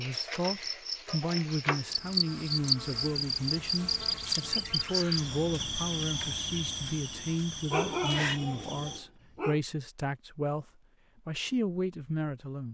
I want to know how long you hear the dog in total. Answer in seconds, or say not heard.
2 s.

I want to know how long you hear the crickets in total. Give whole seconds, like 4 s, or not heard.
9 s.